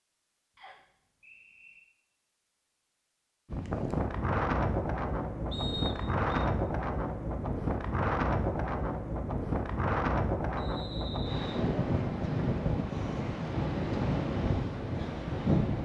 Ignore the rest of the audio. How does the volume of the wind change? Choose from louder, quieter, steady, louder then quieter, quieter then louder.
steady.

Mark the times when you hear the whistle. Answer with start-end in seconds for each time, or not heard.
0.6-1.8, 5.5-6.2, 10.6-11.7.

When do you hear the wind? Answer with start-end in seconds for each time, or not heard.
3.5-15.7.